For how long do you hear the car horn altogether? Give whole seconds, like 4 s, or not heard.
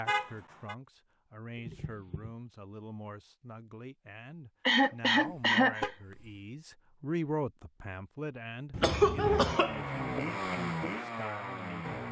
2 s.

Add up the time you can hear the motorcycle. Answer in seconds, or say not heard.
3 s.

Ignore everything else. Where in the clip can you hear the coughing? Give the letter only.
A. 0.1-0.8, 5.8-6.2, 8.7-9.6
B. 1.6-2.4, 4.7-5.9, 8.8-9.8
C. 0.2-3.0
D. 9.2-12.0
B.